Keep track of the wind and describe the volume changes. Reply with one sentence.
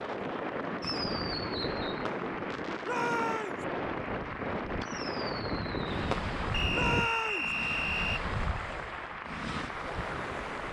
The loudness of the wind stays about the same.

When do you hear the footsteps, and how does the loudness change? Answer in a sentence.
You can't hear the footsteps here.